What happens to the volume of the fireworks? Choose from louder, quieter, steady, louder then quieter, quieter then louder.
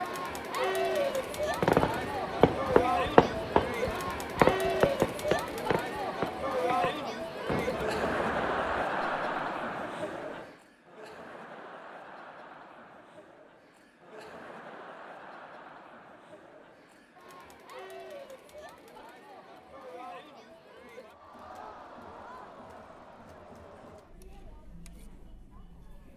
quieter.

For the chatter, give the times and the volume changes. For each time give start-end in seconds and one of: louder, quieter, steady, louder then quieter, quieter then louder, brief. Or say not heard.
0.0-26.1 quieter.